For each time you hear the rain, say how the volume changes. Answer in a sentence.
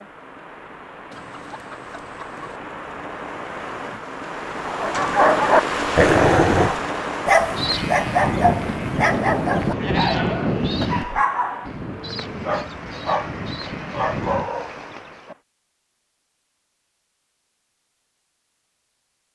The rain can be heard from 0.0 to 15.4 s, getting louder then quieter.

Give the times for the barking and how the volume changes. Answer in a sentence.
The barking can be heard from 4.7 to 15.3 s, getting quieter.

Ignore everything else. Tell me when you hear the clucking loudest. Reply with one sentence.
The volume of the clucking peaks at 2 seconds.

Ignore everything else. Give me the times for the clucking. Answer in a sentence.
You can hear the clucking from 1.1 to 2.6 s.